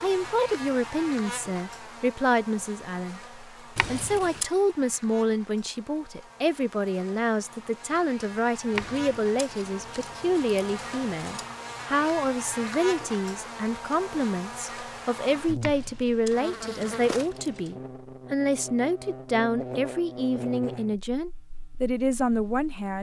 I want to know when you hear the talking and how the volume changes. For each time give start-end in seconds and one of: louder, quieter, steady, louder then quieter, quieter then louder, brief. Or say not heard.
0.0-22.9 steady.